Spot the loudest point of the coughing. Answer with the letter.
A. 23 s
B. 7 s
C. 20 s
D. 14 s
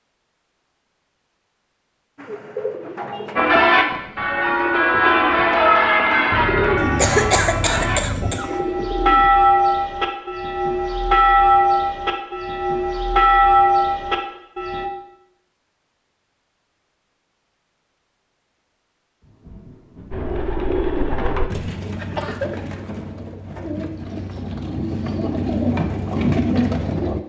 B.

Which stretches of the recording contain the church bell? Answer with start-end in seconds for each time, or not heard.
3.4-14.9.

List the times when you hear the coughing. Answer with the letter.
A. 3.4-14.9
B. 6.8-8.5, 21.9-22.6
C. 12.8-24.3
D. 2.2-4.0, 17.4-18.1
B.